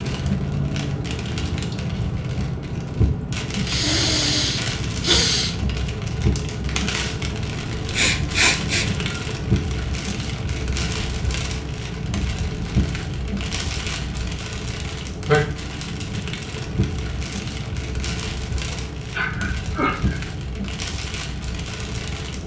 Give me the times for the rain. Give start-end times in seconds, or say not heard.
0.0-22.4.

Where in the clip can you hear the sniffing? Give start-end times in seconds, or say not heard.
3.6-5.5, 7.9-9.0, 18.7-20.2.